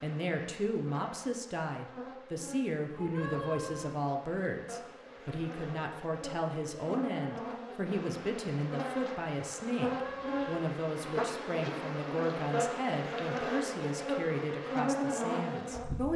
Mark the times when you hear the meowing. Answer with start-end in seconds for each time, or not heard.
3.0-4.0, 9.9-10.7.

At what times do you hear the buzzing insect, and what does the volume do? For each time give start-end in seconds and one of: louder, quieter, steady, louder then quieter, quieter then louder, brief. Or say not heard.
0.0-16.1 louder.